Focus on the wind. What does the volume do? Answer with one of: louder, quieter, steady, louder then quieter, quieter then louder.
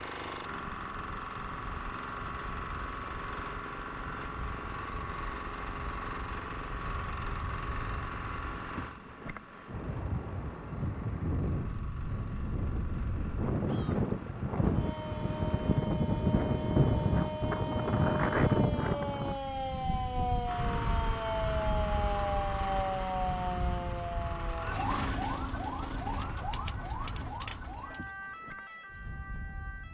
louder then quieter.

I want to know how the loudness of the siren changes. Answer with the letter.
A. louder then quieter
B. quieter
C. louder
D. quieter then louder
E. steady
A.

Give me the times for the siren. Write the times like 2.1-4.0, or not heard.
14.6-29.9.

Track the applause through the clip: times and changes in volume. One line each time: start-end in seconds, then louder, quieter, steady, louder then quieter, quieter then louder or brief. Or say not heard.
not heard.